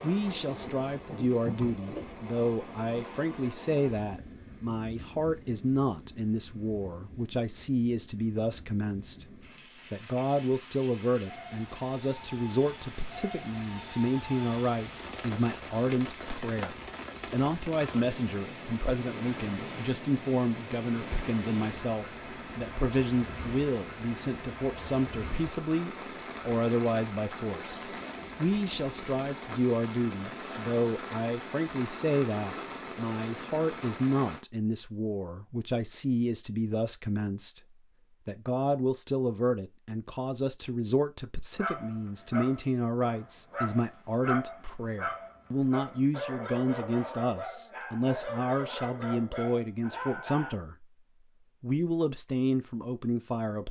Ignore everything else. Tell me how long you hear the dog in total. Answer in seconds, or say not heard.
9 s.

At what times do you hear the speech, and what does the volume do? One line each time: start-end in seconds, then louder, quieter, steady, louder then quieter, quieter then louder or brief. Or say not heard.
0.0-50.9 steady
51.6-53.6 brief.